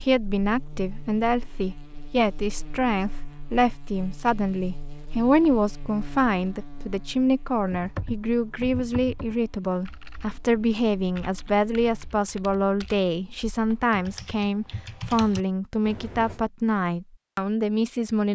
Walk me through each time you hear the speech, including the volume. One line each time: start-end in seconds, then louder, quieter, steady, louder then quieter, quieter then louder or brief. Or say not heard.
0.0-18.2 steady.